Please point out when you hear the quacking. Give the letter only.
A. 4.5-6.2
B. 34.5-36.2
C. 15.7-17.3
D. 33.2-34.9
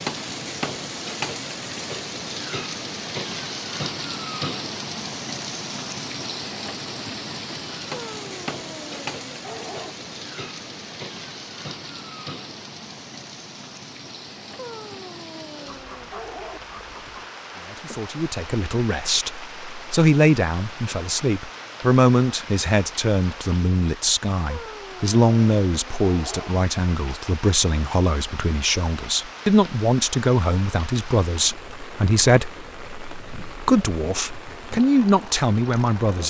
C.